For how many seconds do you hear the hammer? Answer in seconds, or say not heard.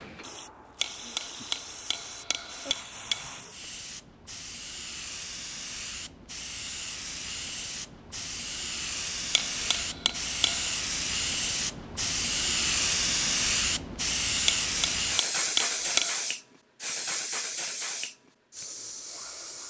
6 s.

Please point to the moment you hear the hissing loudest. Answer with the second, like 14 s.
13 s.